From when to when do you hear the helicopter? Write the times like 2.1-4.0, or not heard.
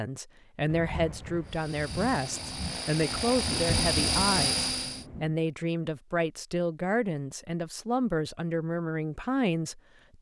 1.4-5.0.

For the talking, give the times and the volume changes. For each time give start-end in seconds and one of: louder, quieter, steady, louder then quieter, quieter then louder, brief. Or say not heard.
0.0-10.1 steady.